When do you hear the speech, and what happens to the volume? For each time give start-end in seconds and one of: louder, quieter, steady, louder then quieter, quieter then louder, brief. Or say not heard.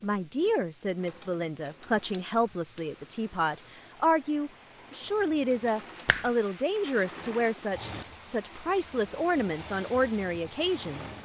0.0-11.1 steady.